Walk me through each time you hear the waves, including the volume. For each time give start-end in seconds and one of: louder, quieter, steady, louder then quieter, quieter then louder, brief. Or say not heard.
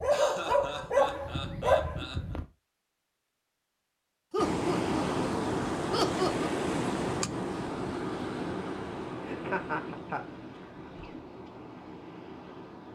4.3-12.9 quieter.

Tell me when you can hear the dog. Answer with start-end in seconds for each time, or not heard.
0.0-2.5.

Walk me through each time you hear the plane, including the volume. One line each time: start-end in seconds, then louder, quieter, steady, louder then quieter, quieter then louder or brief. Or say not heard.
not heard.